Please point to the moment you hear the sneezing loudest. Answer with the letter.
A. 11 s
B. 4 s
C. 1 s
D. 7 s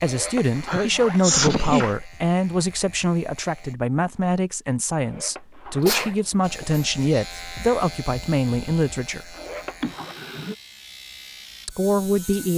C.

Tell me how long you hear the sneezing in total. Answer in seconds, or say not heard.
3 s.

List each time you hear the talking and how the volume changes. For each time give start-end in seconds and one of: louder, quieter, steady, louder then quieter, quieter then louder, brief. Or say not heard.
0.0-9.3 steady
11.7-12.5 brief.